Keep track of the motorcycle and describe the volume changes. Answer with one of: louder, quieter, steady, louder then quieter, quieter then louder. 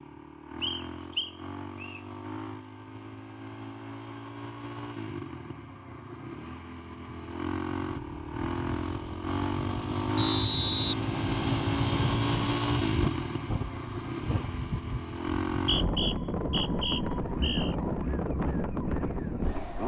louder then quieter.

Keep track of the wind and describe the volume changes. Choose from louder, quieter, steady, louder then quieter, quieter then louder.
louder.